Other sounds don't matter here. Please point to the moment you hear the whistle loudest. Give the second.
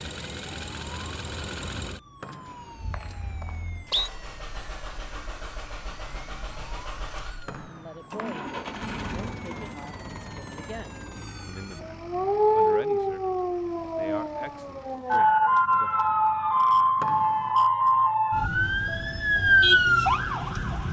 4 s.